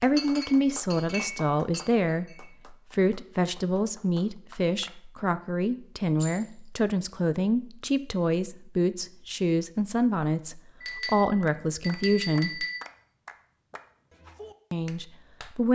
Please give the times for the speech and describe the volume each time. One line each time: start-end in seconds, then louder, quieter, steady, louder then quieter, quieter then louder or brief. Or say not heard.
0.0-12.7 steady
14.7-15.6 brief.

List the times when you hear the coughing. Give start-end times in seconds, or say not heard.
not heard.